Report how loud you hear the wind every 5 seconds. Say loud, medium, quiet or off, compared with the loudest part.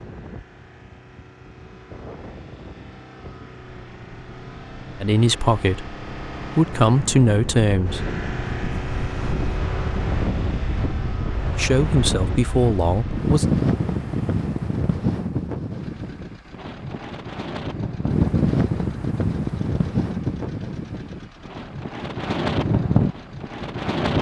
quiet, medium, loud, loud, loud.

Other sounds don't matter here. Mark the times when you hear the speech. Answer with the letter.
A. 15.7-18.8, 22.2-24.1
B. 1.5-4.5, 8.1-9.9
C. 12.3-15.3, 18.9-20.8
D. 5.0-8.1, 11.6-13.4
D.